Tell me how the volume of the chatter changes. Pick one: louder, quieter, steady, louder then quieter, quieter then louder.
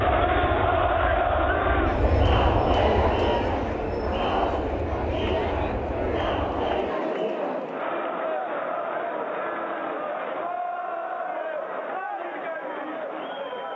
quieter.